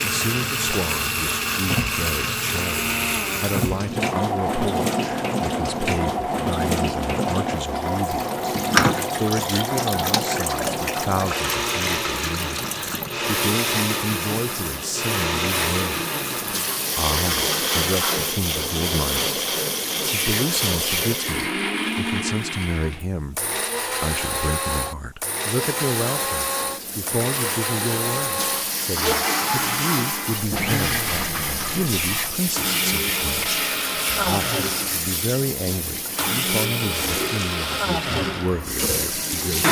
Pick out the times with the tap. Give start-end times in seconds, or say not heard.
0.0-21.6, 25.5-39.6.